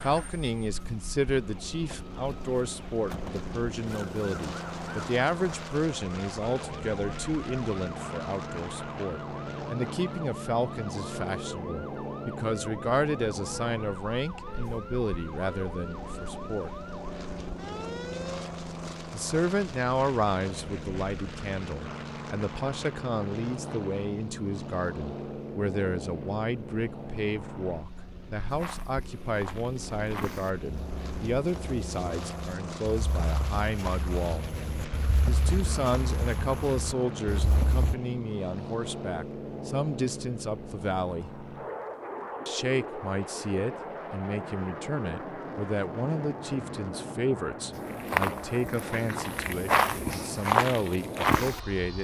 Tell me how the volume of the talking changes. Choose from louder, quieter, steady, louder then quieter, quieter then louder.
steady.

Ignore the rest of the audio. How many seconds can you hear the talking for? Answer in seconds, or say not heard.
48 s.